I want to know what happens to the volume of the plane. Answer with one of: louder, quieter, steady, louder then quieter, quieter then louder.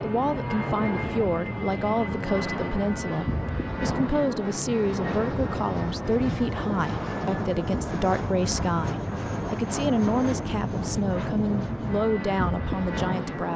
steady.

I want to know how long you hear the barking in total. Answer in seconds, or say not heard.
not heard.